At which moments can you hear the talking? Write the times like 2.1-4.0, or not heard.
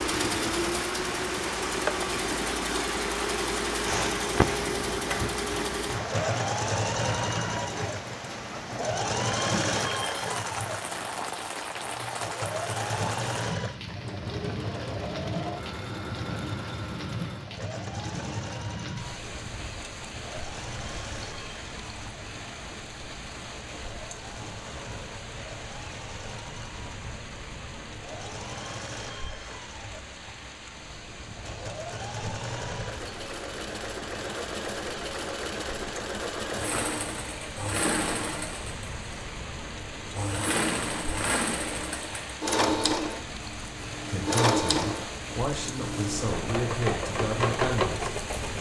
44.0-48.0.